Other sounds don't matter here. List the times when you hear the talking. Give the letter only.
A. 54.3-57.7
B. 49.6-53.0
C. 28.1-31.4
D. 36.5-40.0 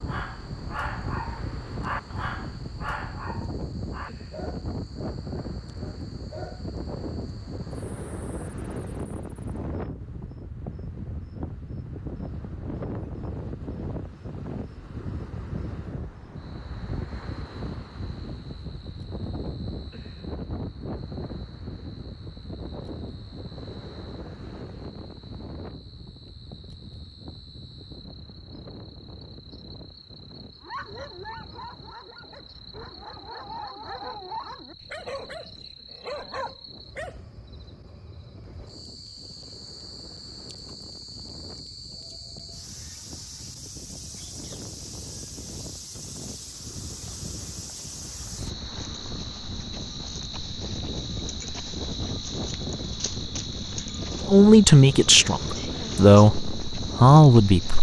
A.